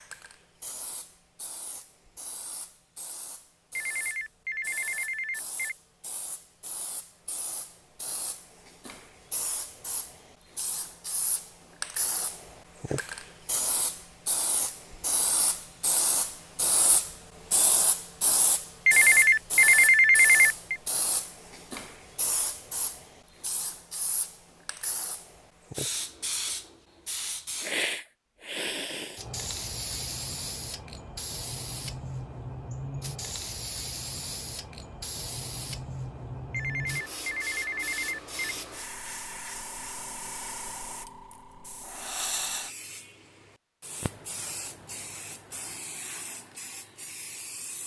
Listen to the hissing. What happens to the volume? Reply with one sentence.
The volume of the hissing goes up, then down.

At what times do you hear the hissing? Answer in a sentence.
The hissing can be heard from 0.0 to 47.8 s.